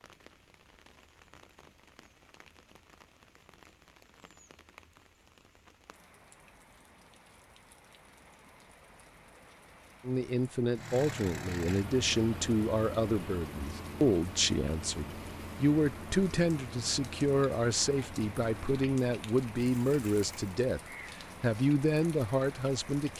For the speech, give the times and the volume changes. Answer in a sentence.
You can hear the speech from 10.1 to 20.8 s, at a steady volume; and briefly from 21.4 to 23.1 s.